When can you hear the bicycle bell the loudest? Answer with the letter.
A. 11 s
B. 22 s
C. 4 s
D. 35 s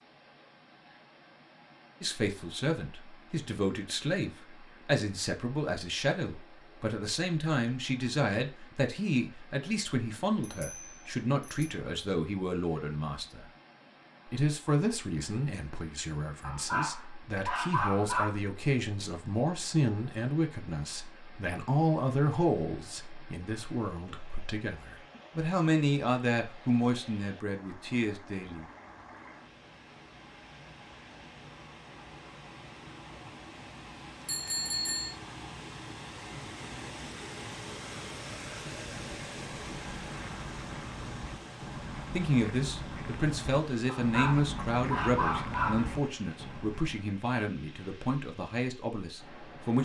D.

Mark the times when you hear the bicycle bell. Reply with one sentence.
You can hear the bicycle bell from 10.4 to 11.7 s and from 34.2 to 35.1 s.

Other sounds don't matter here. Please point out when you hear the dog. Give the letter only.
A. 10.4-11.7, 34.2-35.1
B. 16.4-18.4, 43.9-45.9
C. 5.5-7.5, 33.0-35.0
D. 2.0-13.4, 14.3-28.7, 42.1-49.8
B.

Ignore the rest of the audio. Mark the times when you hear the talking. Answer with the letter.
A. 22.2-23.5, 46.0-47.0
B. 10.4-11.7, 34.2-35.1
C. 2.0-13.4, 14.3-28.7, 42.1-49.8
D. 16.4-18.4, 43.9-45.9
C.